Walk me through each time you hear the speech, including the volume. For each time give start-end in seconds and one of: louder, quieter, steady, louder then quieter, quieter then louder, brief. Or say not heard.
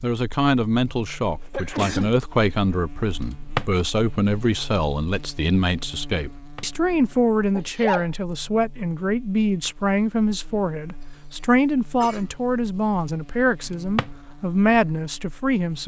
0.0-15.8 steady.